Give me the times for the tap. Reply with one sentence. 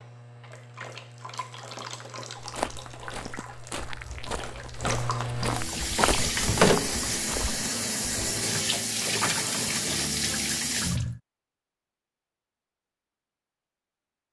The tap can be heard from 0.0 to 11.2 s.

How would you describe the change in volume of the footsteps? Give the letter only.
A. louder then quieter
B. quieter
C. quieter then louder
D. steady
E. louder
E.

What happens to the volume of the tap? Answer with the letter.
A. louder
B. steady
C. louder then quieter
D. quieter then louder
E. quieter
A.